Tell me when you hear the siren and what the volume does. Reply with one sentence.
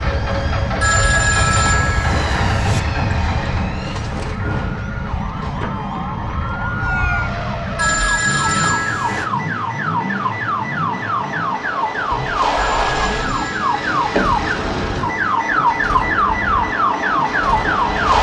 You can hear the siren from 0.0 to 18.1 s, getting louder.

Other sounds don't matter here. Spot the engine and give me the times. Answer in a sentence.
The engine can be heard from 0.0 to 18.1 s.